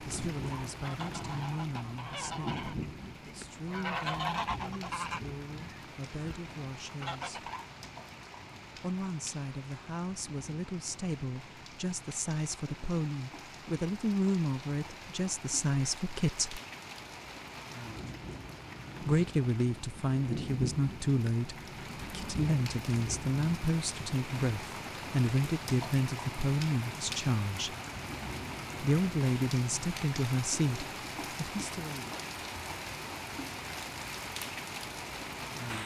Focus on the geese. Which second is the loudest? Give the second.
4 s.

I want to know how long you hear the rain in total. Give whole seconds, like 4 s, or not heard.
36 s.